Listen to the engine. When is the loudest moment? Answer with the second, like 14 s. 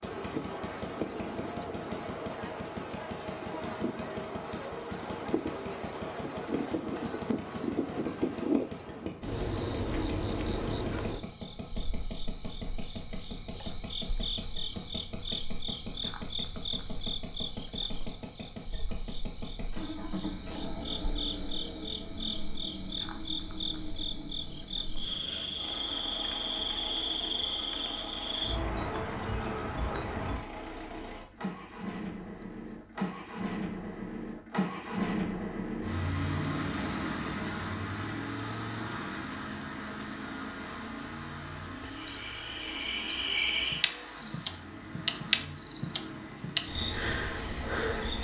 35 s.